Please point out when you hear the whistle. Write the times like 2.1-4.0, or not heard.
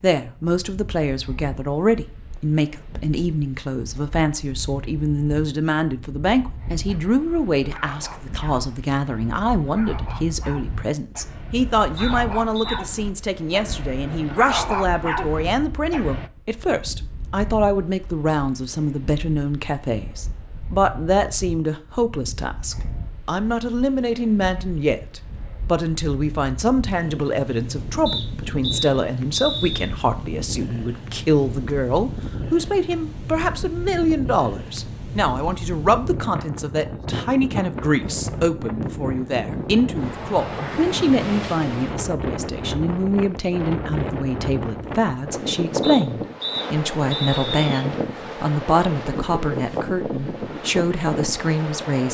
11.9-12.8, 28.1-29.9, 45.8-47.6.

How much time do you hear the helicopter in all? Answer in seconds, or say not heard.
not heard.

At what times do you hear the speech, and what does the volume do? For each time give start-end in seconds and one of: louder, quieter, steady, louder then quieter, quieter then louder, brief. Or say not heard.
0.0-52.0 steady.